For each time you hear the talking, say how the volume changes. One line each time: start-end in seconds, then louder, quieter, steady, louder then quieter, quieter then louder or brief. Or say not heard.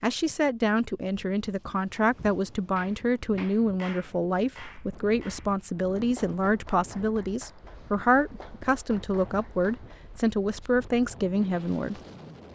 0.0-12.0 steady.